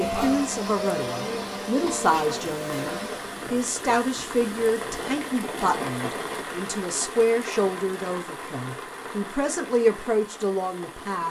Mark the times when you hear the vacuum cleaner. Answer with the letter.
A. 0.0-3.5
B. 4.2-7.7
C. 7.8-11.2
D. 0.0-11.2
A.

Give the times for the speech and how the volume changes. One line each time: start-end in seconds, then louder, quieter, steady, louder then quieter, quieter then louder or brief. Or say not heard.
0.0-11.2 steady.